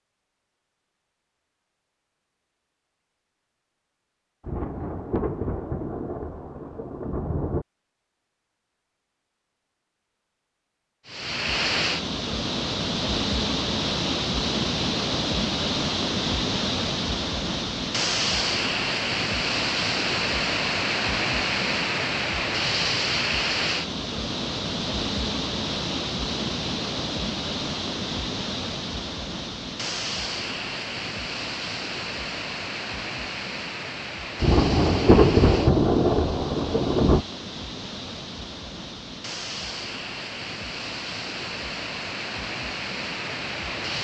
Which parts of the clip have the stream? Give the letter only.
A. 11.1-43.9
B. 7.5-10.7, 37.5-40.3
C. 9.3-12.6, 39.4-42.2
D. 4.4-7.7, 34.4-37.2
A.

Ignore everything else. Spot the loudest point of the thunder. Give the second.
35 s.